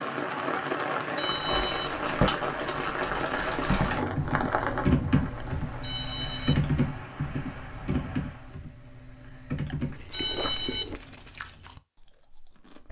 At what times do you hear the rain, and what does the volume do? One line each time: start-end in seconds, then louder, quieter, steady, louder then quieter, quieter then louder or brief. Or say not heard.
0.0-8.6 quieter.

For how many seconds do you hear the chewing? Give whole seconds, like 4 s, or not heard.
3 s.